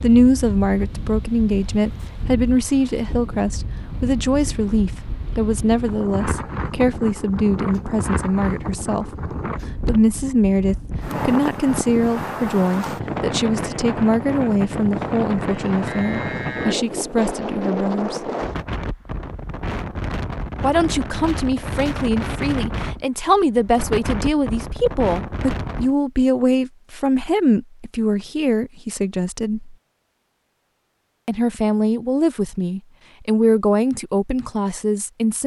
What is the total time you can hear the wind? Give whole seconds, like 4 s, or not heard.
26 s.